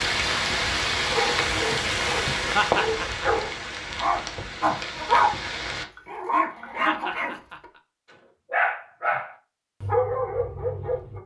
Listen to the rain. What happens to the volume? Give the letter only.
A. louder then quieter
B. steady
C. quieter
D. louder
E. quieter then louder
C.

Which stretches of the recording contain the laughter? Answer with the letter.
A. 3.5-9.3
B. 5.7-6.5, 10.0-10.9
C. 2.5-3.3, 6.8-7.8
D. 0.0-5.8
C.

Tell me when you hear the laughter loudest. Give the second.
3 s.